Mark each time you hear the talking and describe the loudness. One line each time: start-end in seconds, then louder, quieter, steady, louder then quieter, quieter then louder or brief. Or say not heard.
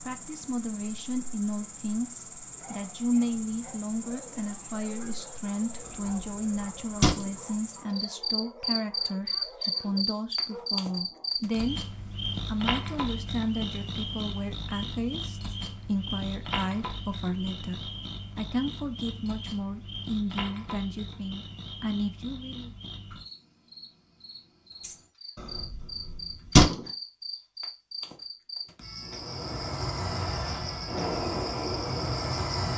0.0-22.7 steady.